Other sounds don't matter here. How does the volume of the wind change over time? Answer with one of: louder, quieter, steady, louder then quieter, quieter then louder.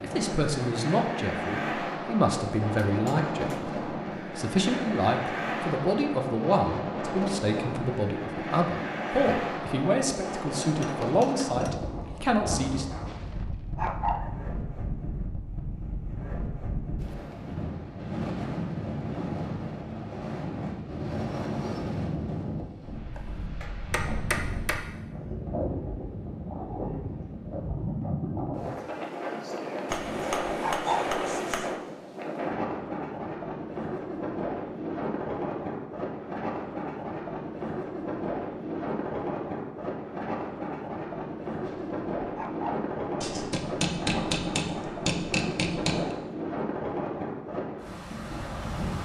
steady.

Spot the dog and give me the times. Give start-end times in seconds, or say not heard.
13.1-14.3, 29.9-31.1, 41.6-42.9.